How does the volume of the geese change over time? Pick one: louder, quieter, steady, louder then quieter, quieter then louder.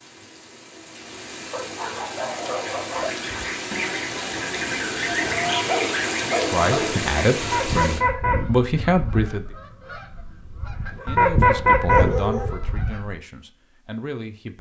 louder.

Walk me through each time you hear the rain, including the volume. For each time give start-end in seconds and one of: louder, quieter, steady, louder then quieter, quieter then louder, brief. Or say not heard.
0.0-8.0 louder.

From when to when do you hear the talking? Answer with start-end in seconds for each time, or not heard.
6.5-9.4, 10.8-14.5.